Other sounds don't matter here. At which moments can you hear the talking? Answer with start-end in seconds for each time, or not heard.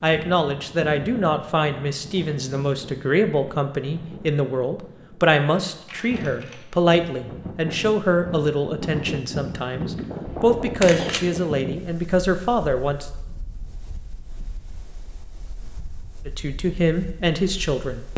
0.0-13.1, 16.2-18.1.